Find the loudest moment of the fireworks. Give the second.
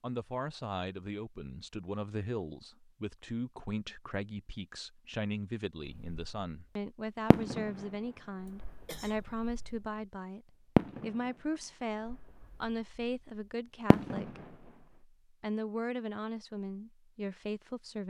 11 s.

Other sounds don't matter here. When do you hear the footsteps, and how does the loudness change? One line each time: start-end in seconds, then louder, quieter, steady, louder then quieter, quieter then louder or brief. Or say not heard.
not heard.